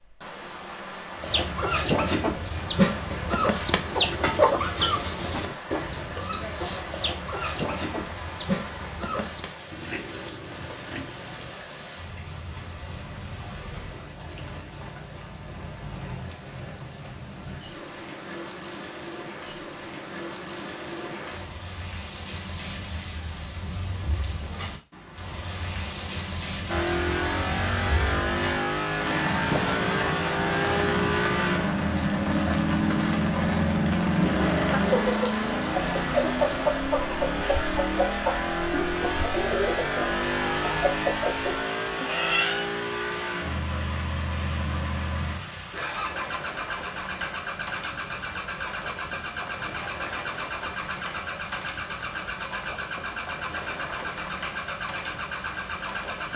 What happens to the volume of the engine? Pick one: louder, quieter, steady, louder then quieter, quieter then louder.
quieter.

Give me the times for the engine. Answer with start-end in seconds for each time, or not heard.
26.6-56.3.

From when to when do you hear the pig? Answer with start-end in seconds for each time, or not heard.
9.7-11.6.